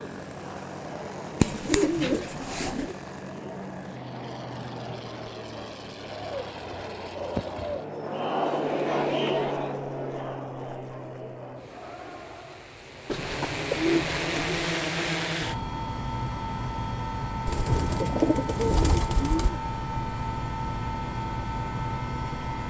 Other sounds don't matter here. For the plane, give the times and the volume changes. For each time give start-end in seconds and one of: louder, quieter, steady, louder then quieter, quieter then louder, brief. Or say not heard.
0.0-22.6 louder.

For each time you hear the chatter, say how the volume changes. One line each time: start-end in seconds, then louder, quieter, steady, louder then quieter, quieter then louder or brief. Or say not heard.
0.0-12.8 louder then quieter.